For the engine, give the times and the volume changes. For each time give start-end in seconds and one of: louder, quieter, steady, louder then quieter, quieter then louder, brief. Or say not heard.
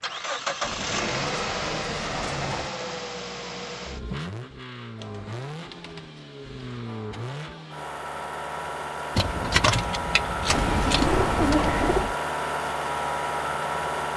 0.0-14.1 quieter then louder.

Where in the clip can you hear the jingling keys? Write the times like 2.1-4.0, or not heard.
9.2-11.8.